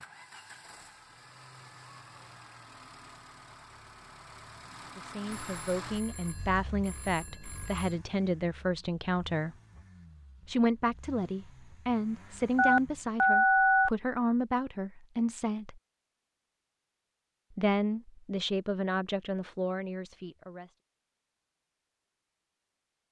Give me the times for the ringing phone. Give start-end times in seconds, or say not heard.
5.3-8.0, 12.6-13.9.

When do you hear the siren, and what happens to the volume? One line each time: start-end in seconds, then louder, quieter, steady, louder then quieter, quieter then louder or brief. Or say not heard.
not heard.